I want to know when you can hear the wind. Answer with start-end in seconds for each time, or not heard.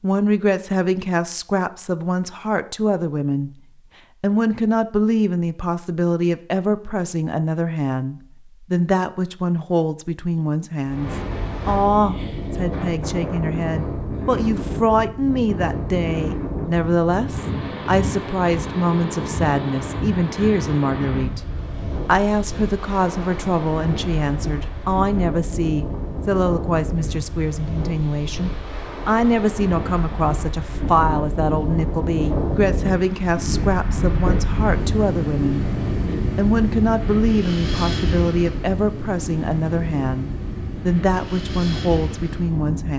10.8-42.9.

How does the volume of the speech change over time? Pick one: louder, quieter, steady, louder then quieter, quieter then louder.
steady.